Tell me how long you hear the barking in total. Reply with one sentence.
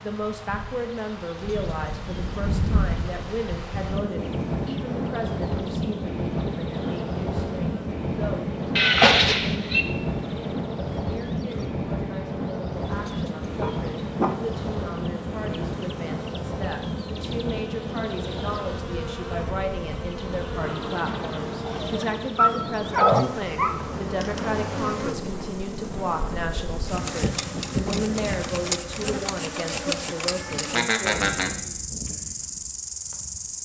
The barking can be heard for 3 seconds in total.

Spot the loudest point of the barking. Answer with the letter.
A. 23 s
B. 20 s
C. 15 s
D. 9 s
A.